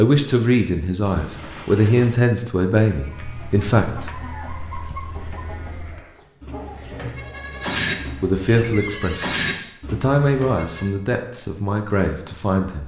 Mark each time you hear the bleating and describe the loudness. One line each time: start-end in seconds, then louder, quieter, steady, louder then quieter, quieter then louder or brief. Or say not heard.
2.9-10.9 louder.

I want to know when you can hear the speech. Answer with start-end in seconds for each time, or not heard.
0.0-4.1, 7.5-12.8.